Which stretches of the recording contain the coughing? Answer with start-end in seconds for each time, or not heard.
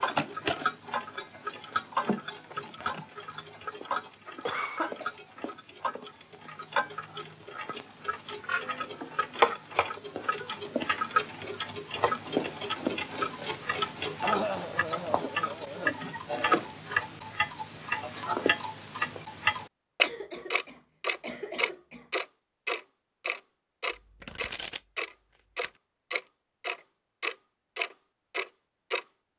4.2-5.1, 14.2-15.9, 20.0-22.1.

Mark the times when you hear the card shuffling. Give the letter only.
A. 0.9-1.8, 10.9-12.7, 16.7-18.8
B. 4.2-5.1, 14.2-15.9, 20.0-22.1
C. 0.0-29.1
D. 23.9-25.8
D.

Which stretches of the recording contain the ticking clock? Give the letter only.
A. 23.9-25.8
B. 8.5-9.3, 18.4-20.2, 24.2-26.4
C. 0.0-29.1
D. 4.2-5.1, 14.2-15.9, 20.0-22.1
C.